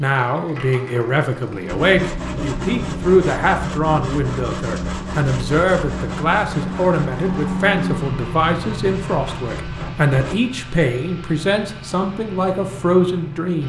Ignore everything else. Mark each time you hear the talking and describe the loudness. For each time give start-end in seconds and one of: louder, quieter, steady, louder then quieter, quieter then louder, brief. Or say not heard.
0.0-13.6 steady.